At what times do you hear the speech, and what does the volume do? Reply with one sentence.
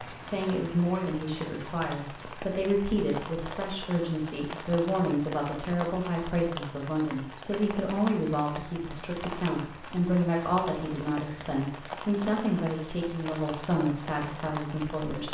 You can hear the speech from 0.1 to 15.2 s, at a steady volume.